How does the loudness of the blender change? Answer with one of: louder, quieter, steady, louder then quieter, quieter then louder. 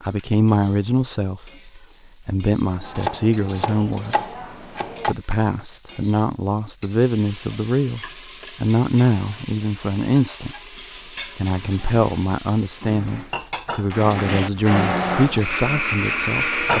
louder.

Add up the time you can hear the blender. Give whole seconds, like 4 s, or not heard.
5 s.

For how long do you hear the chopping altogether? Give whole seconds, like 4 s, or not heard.
2 s.